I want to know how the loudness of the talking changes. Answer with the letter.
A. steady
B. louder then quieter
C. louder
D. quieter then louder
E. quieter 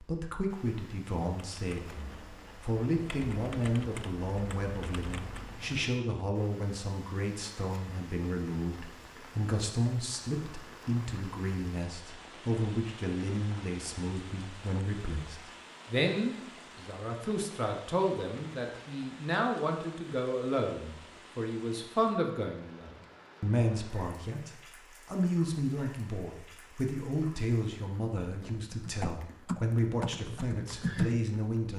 A.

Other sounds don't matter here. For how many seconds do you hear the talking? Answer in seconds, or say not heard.
32 s.